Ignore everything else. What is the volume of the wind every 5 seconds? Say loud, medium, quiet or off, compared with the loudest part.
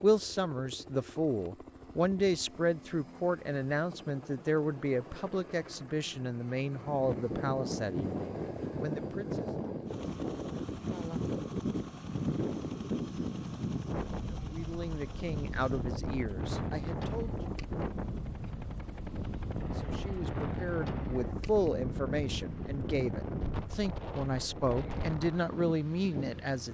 off, loud, loud, loud, loud, medium.